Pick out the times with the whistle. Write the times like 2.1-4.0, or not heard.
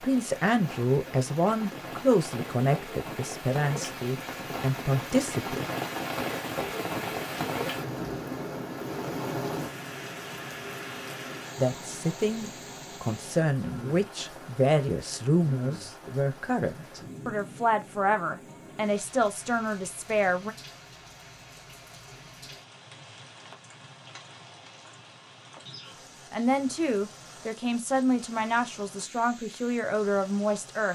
not heard.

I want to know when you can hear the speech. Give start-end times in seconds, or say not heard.
0.0-5.7, 11.6-20.6, 26.3-30.9.